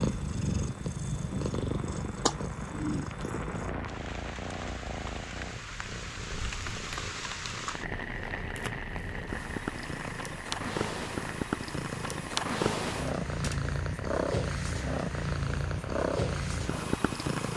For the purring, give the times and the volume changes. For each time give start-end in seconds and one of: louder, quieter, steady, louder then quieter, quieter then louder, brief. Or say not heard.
0.0-17.5 quieter then louder.